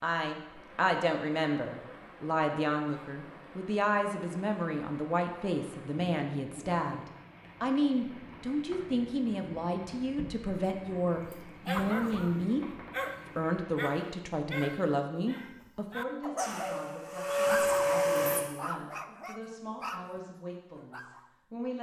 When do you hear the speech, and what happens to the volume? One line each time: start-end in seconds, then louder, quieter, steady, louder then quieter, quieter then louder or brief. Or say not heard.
0.0-21.7 quieter.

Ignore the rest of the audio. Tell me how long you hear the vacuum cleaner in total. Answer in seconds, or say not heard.
2 s.